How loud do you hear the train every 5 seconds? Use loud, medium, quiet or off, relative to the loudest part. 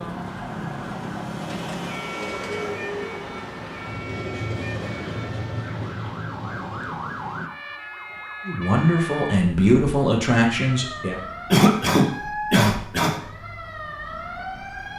loud, loud, off.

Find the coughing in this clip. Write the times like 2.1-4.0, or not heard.
11.5-13.2.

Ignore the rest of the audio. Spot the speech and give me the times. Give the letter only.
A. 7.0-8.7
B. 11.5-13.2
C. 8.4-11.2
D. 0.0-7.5
C.